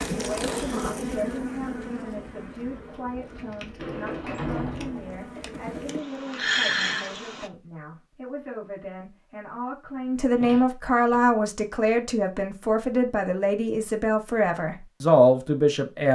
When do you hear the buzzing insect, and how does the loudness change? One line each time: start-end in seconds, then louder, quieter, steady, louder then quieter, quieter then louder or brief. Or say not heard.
0.0-7.5 quieter then louder.